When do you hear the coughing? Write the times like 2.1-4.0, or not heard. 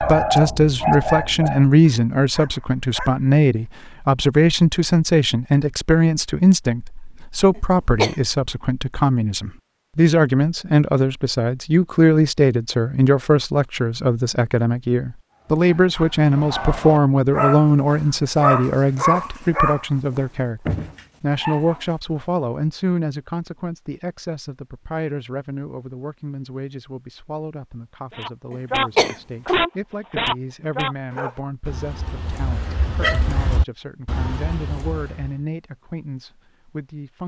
7.5-8.2, 28.5-29.6.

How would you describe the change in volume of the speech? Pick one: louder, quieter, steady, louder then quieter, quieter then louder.
quieter.